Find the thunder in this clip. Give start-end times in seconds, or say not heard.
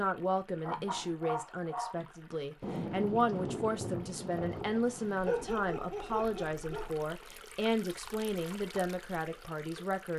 2.6-5.5.